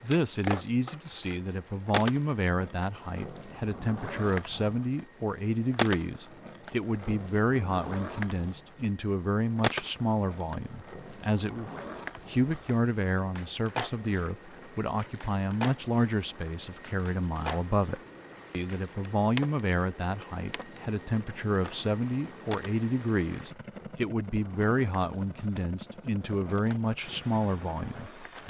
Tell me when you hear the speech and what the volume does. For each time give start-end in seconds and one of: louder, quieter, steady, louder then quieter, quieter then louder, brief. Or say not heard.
0.0-28.4 steady.